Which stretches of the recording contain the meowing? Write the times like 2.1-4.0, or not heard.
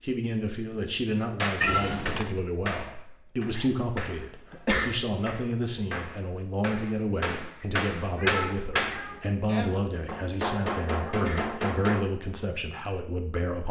1.6-2.3, 8.2-9.2.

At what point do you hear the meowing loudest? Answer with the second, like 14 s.
2 s.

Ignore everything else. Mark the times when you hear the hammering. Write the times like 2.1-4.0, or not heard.
1.4-12.1.